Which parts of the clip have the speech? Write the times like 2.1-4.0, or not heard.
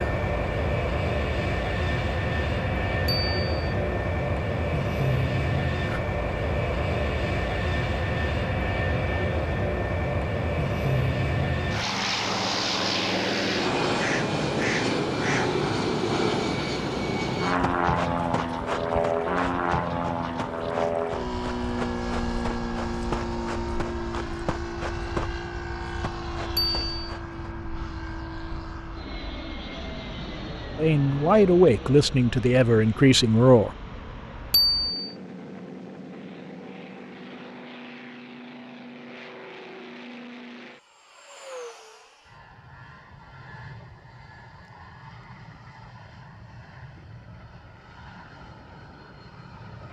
30.8-33.7.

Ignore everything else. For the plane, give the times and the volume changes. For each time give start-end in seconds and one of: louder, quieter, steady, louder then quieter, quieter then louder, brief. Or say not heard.
0.0-49.8 quieter.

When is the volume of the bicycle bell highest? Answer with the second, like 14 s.
35 s.